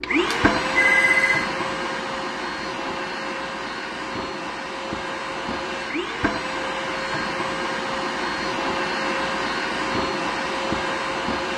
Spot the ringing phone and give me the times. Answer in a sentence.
The ringing phone can be heard from 0.3 to 1.5 s.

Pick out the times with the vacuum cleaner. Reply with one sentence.
The vacuum cleaner can be heard from 0.0 to 11.5 s.